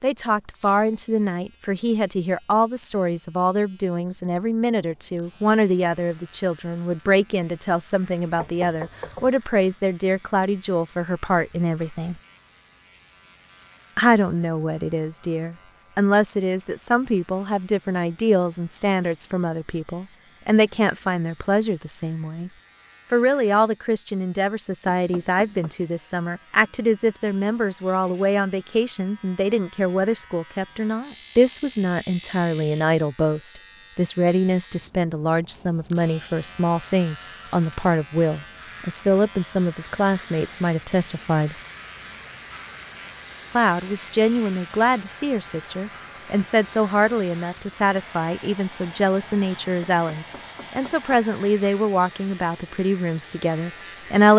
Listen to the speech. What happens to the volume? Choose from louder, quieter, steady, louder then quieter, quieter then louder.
steady.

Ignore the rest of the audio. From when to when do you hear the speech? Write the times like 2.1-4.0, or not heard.
0.0-12.2, 13.9-22.5, 23.1-41.5, 43.5-54.3.